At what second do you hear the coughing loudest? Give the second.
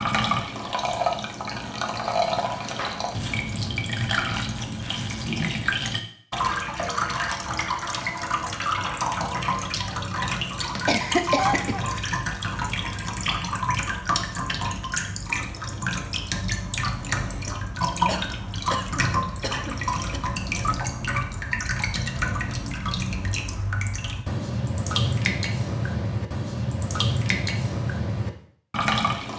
11 s.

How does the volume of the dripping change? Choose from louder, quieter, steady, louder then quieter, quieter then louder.
steady.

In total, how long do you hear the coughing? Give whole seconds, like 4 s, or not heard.
3 s.